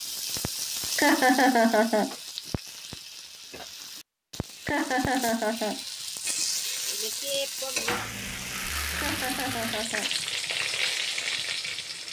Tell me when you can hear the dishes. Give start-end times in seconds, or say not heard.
not heard.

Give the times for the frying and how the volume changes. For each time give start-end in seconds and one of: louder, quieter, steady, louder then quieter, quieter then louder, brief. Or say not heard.
0.0-12.0 quieter then louder.